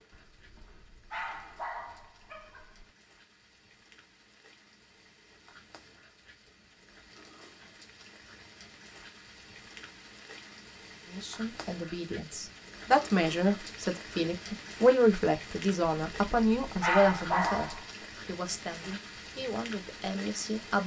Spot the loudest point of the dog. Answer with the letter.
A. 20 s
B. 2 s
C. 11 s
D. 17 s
D.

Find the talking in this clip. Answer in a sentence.
The talking can be heard from 11.1 to 20.8 s.